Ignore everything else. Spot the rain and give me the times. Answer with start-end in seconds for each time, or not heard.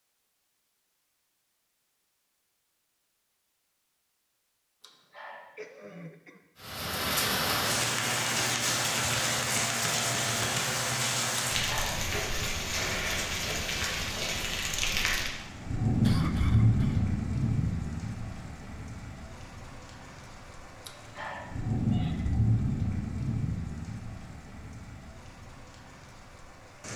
6.6-26.9.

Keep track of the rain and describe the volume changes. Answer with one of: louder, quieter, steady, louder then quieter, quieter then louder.
quieter.